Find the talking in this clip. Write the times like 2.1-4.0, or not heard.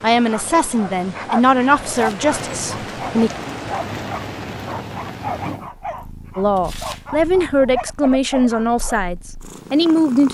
0.0-3.3, 6.3-10.2.